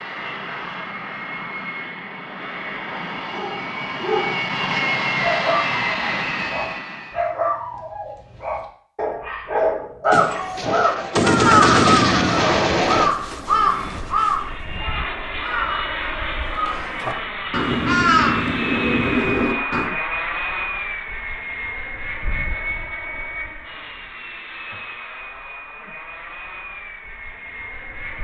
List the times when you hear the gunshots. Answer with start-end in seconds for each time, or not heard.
10.1-13.2.